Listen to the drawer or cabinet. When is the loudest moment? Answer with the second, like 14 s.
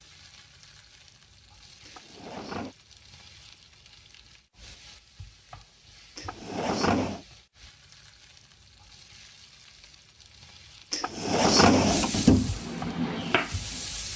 12 s.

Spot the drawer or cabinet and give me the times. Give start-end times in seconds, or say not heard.
1.9-2.8, 6.2-7.2, 10.9-12.5.